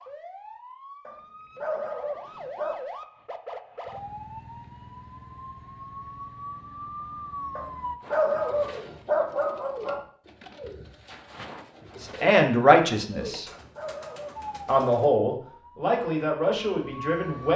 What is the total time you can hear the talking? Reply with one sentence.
The talking can be heard for 4 seconds in total.